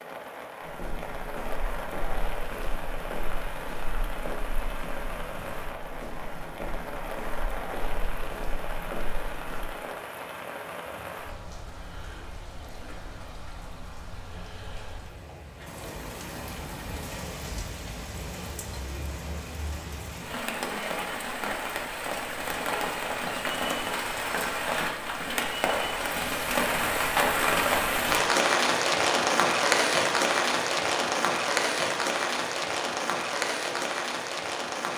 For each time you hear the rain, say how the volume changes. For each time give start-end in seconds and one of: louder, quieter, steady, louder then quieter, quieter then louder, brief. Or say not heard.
0.0-34.9 louder.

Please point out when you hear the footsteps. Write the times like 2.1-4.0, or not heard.
0.6-9.7.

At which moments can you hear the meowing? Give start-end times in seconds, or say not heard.
not heard.